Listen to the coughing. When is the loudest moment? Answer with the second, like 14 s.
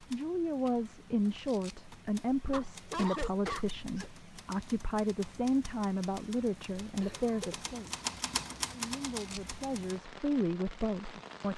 3 s.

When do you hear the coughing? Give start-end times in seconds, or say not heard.
2.5-4.1, 7.0-7.8.